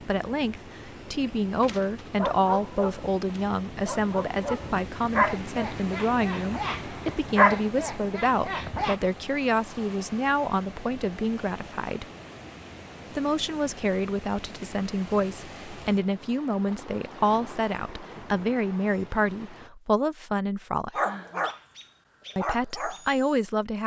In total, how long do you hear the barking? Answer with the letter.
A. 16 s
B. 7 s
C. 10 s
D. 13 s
C.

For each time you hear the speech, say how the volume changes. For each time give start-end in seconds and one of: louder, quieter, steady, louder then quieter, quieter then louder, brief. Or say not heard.
0.1-12.1 steady
13.2-21.0 steady
22.4-23.8 brief.